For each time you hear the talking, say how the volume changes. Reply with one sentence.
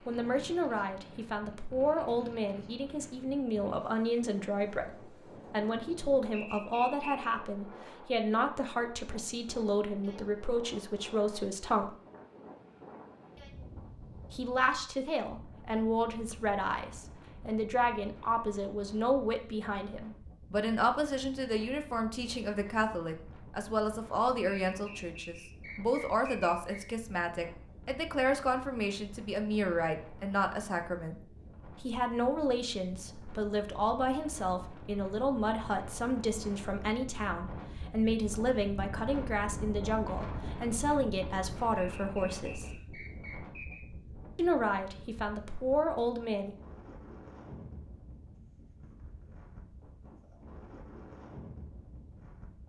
The talking can be heard from 0.1 to 11.9 s, at a steady volume; from 14.3 to 31.1 s, at a steady volume; from 31.8 to 42.8 s, at a steady volume; and briefly from 44.4 to 46.5 s.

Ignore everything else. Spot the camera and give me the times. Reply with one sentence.
The camera can't be heard in this clip.